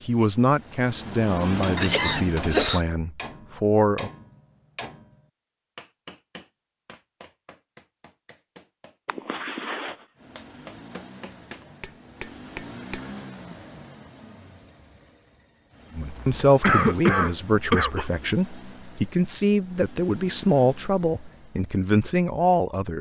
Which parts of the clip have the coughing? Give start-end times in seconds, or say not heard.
1.8-2.8, 9.1-9.9, 16.1-18.1.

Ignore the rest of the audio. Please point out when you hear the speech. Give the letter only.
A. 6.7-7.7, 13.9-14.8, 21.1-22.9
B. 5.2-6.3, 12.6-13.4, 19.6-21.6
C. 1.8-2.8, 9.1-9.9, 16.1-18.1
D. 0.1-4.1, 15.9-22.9
D.